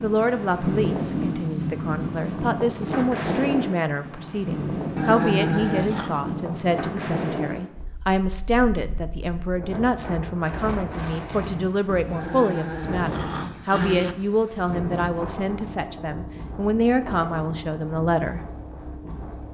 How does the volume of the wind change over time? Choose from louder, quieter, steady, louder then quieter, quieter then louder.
quieter.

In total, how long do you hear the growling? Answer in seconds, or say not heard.
3 s.